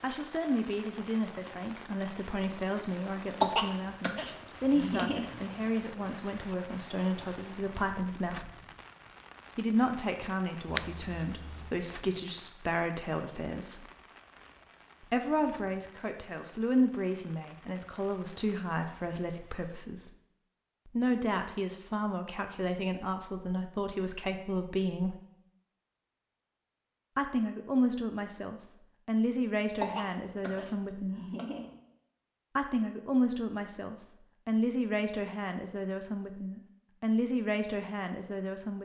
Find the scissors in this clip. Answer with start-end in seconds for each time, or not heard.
10.7-11.8.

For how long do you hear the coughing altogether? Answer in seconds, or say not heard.
4 s.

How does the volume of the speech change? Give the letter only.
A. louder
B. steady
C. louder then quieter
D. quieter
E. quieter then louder
B.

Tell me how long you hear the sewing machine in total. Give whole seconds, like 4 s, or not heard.
not heard.